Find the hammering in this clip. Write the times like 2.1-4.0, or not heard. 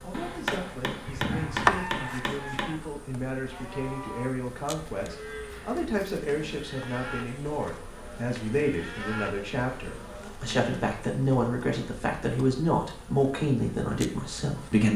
0.1-2.7.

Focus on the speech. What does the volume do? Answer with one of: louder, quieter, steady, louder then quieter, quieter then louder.
louder.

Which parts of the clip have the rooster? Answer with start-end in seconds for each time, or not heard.
1.1-2.8.